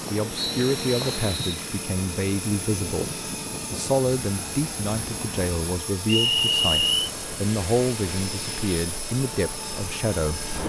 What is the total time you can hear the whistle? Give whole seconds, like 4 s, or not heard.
2 s.